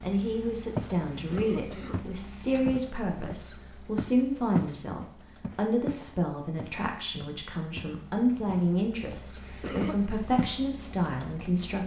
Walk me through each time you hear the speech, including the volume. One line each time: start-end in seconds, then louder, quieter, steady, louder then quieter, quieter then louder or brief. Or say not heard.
0.0-11.8 steady.